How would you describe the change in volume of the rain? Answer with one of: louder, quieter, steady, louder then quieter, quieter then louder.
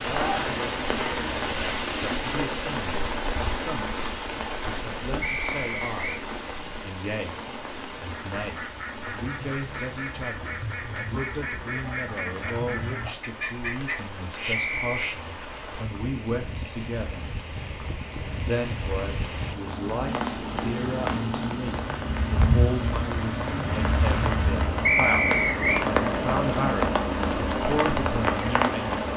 quieter then louder.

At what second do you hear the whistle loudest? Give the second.
25 s.